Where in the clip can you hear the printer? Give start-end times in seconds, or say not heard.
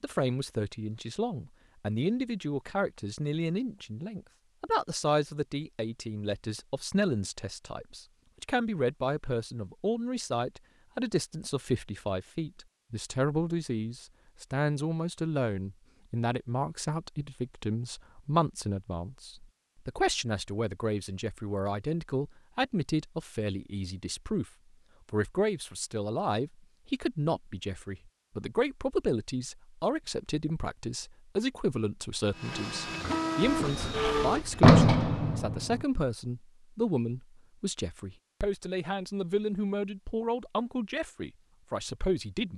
32.3-35.5.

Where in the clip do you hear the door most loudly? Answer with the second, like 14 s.
35 s.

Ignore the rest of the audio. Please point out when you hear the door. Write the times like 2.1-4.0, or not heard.
33.6-35.9.